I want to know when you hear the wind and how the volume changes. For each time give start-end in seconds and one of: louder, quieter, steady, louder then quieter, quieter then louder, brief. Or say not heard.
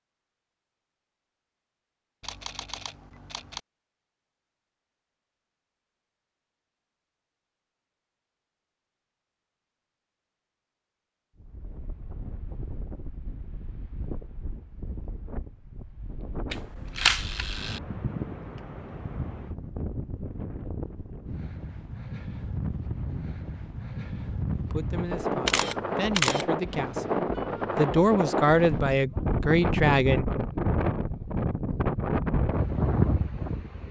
11.3-33.8 louder.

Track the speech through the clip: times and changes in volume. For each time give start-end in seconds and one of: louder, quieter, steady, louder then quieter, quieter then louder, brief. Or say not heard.
24.6-30.2 louder.